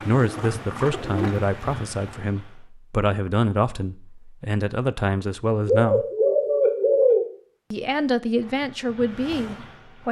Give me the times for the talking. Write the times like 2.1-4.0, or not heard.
0.1-6.0, 7.7-10.0.